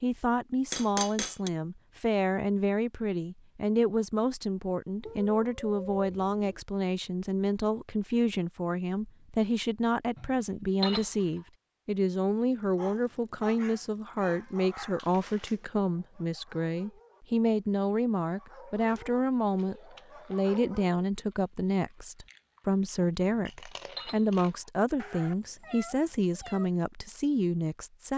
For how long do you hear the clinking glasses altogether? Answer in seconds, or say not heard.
3 s.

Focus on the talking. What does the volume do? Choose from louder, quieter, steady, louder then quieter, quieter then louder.
steady.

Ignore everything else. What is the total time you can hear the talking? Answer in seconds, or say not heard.
28 s.